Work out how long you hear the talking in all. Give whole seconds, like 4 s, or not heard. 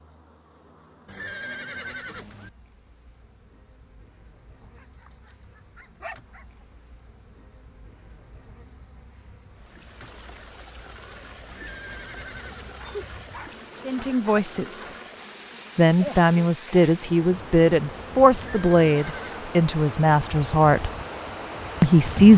7 s.